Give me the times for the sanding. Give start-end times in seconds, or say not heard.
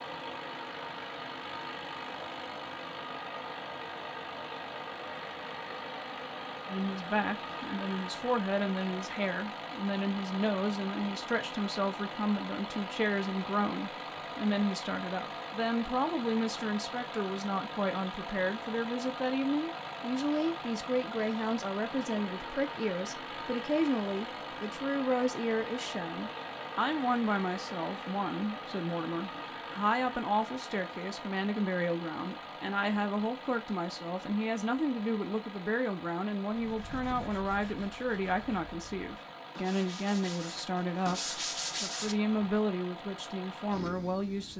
36.5-42.4.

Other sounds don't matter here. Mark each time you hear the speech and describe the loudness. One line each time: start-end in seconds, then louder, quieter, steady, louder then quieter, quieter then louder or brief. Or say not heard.
6.7-44.5 steady.